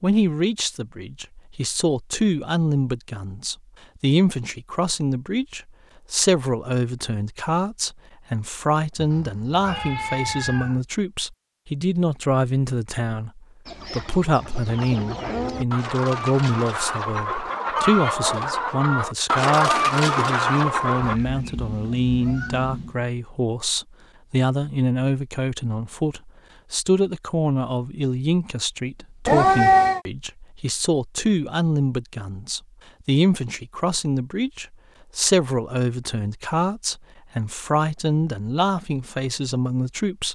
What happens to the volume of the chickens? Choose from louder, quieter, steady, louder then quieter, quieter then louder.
louder.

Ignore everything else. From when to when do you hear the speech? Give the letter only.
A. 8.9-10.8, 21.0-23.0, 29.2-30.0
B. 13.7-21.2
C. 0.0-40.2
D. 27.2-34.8
C.